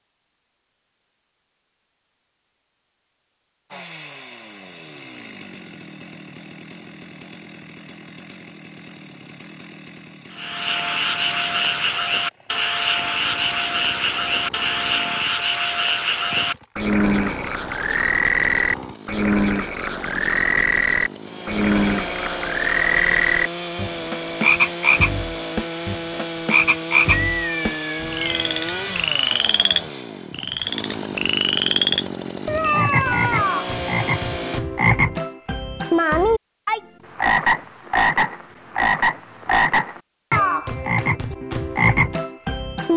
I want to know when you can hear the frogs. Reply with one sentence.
The frogs can be heard from 10.3 to 42.9 s.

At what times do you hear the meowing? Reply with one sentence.
The meowing can be heard from 27.1 to 28.9 s.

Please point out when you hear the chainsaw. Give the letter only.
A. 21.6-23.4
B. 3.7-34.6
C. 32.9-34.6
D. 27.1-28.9
B.